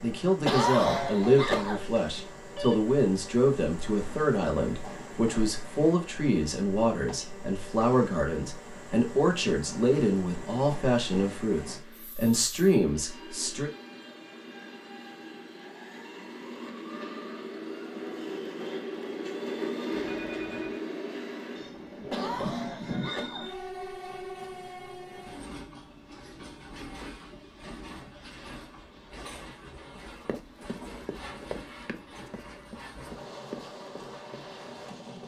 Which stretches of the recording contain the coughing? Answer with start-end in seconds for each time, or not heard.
0.5-1.9, 22.1-23.6.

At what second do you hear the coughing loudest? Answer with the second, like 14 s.
1 s.